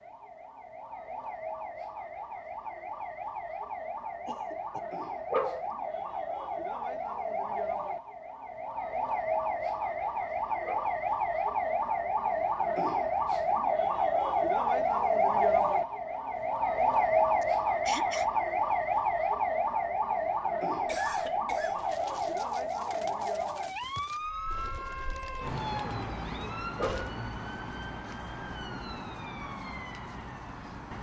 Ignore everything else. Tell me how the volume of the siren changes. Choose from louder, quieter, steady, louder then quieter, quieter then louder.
louder then quieter.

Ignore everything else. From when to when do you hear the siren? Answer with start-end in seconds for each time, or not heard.
0.0-30.9.